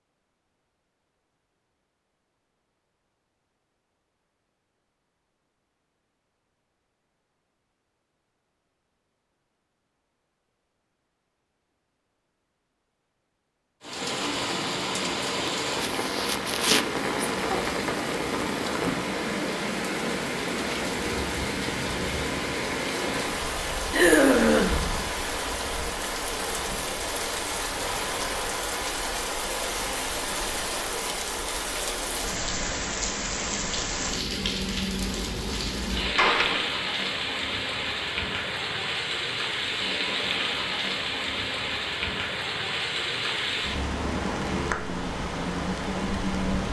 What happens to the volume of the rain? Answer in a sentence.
The volume of the rain stays about the same.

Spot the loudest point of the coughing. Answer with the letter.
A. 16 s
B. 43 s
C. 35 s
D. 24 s
D.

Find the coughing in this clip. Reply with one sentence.
The coughing can be heard from 15.4 to 17.8 s and from 23.9 to 24.9 s.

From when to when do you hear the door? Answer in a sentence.
You can hear the door from 36.0 to 36.6 s.